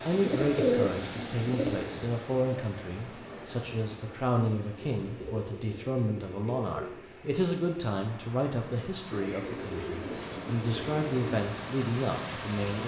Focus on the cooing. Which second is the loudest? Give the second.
1 s.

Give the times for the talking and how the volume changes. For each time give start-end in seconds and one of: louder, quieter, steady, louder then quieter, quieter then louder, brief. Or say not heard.
0.0-12.8 steady.